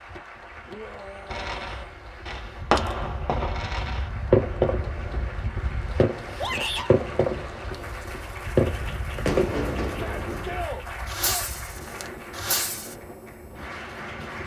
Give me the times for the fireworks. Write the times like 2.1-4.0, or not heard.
1.3-12.9.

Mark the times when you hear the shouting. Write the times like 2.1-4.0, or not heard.
0.7-1.9, 6.3-6.9, 9.8-11.4.